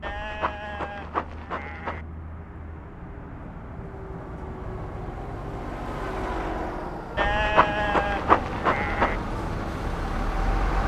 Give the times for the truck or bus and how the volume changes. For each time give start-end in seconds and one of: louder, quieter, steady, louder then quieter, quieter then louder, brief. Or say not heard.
0.0-10.8 louder.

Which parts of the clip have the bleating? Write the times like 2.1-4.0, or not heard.
0.0-2.0, 7.2-9.2.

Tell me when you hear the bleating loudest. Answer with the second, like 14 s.
8 s.